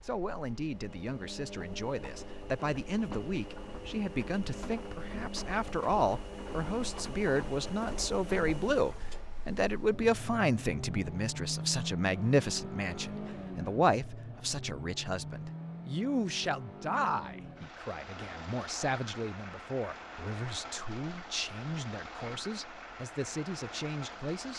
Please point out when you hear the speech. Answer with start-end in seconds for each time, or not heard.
0.0-24.5.